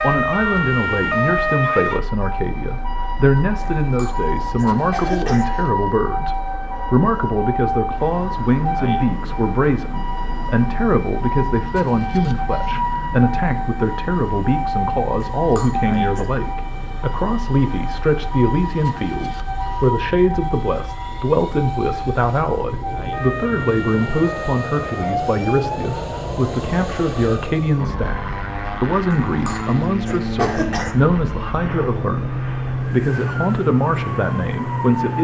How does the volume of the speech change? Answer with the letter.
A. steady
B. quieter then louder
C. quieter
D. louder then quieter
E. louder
A.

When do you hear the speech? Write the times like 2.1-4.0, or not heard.
0.0-35.1.